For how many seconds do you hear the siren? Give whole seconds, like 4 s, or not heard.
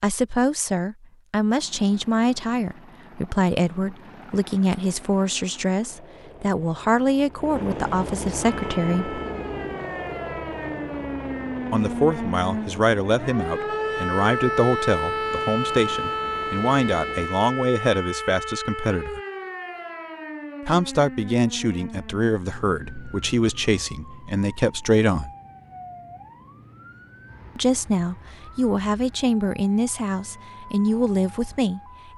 24 s.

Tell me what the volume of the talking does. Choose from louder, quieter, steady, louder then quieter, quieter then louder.
steady.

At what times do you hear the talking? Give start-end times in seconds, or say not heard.
0.0-9.2, 11.7-19.2, 20.6-25.3, 27.6-31.8.